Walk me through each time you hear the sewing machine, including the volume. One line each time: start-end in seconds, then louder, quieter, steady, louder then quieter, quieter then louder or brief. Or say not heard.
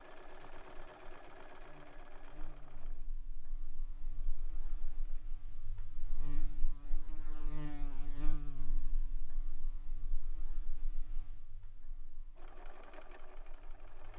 0.0-5.2 quieter then louder
12.3-14.1 brief.